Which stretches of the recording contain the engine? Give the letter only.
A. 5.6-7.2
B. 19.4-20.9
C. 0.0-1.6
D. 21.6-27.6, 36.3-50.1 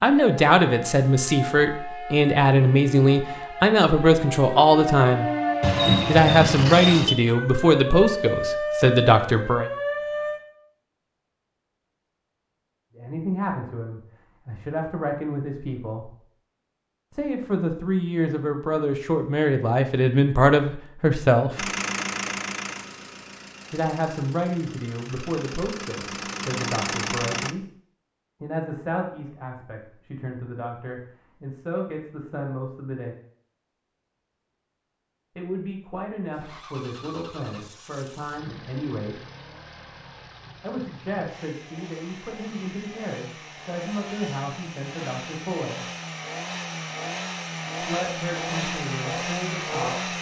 D.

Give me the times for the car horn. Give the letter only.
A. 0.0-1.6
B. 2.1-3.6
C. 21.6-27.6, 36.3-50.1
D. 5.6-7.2
D.